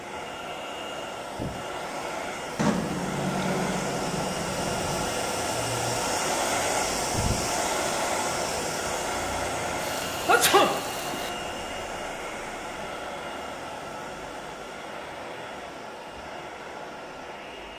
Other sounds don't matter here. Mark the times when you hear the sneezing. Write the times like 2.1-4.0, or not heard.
10.2-10.7.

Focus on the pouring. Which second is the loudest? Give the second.
3 s.